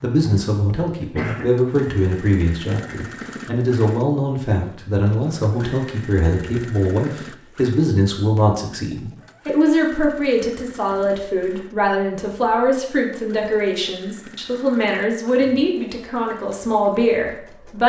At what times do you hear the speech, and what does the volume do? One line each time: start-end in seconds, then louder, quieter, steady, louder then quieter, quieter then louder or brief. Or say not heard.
0.0-17.8 steady.